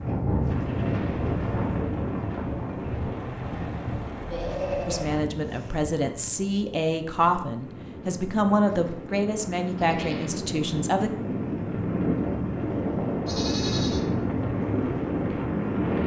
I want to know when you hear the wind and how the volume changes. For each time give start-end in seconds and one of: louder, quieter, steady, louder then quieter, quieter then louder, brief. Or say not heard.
0.0-16.0 quieter then louder.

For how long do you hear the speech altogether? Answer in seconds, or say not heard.
6 s.